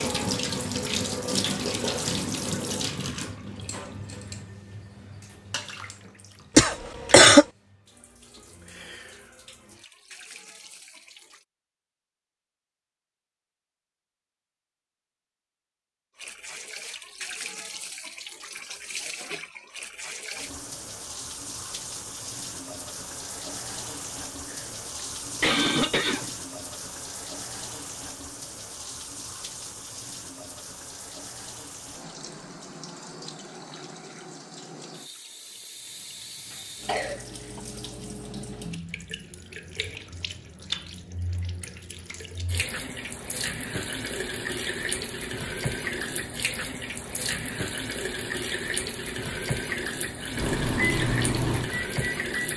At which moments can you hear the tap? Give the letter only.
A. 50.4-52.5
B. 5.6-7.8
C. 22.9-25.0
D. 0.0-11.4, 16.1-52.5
D.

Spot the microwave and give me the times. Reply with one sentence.
You can hear the microwave from 50.4 to 52.5 s.